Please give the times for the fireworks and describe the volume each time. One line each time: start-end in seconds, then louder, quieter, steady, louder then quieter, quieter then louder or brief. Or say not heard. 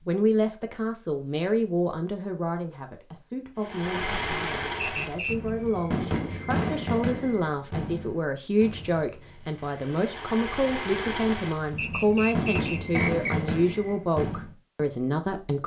3.6-14.6 quieter then louder.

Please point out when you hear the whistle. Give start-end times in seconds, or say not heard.
4.8-5.5, 11.8-13.4.